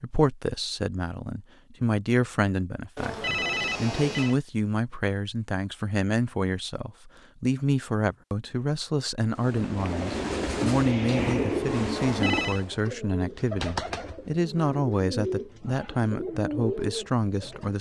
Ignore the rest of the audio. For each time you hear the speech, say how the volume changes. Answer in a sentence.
You can hear the speech from 0.0 to 17.7 s, at a steady volume.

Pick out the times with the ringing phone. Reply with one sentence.
You can hear the ringing phone from 3.0 to 4.3 s and from 11.9 to 12.7 s.